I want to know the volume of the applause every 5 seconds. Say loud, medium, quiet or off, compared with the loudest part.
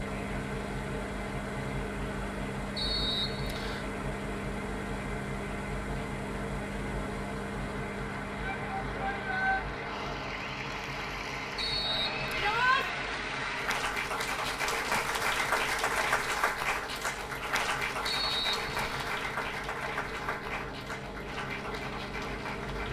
medium, medium, loud, loud, medium.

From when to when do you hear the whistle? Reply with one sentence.
You can hear the whistle from 2.8 to 3.9 s, from 11.6 to 12.6 s and from 18.1 to 19.1 s.